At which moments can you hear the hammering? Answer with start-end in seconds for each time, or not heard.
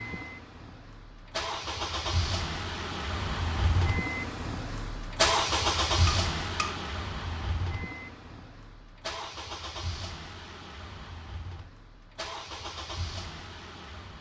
6.0-6.8.